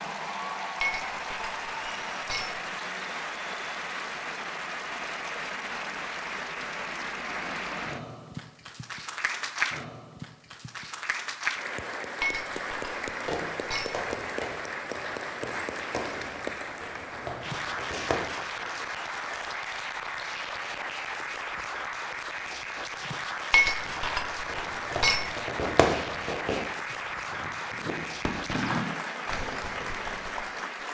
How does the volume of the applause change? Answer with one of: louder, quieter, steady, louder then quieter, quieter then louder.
steady.